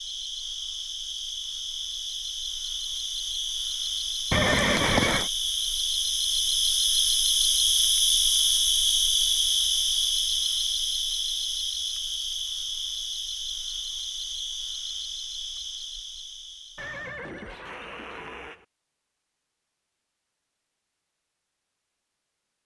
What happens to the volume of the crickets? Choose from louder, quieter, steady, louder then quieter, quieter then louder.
louder then quieter.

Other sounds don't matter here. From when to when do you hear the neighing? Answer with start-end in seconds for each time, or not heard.
4.3-5.3, 16.8-18.6.